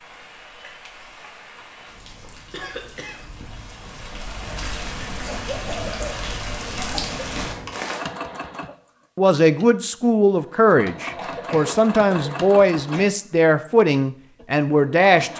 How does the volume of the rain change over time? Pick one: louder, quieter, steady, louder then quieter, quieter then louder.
louder.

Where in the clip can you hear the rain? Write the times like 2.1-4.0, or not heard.
0.0-8.0.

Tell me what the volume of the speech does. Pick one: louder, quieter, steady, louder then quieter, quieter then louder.
steady.